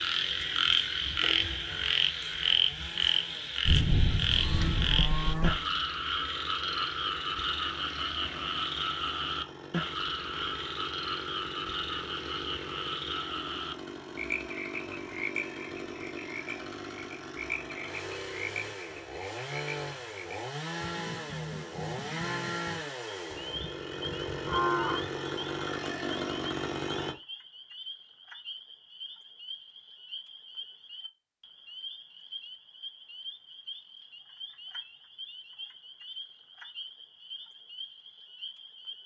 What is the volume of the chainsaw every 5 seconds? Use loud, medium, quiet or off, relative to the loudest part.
quiet, quiet, medium, medium, loud, loud, off, off.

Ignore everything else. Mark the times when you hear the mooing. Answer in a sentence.
You can hear the mooing from 3.6 to 5.6 s and from 23.3 to 25.1 s.